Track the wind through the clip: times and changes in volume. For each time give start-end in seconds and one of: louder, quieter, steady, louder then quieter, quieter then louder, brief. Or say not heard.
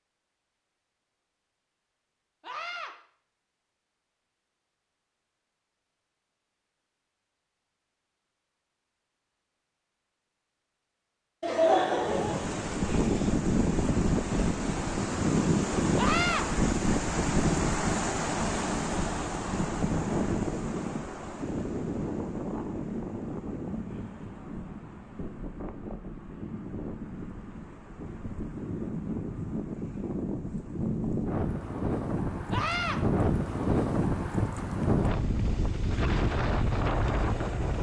11.9-37.7 quieter then louder.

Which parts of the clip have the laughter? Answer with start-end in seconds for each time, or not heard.
11.4-12.6.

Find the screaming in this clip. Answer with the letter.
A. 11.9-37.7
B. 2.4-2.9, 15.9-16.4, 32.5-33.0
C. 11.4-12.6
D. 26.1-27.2
B.